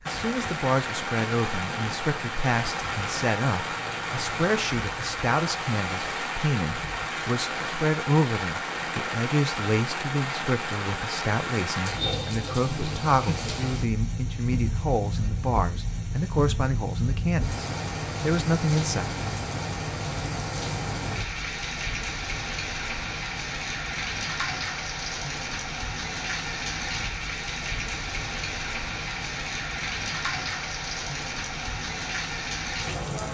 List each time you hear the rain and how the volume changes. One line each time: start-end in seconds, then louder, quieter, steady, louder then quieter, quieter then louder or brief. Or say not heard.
0.0-33.2 steady.